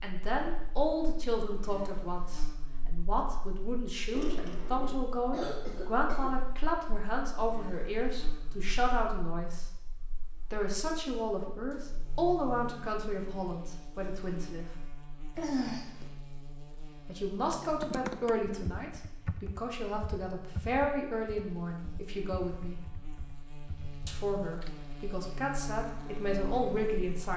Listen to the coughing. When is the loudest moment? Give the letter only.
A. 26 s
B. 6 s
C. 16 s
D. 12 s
C.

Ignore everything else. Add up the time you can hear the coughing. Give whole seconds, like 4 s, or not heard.
3 s.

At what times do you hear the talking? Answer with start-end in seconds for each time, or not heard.
0.0-9.7, 10.5-14.7, 17.1-22.8, 24.1-27.3.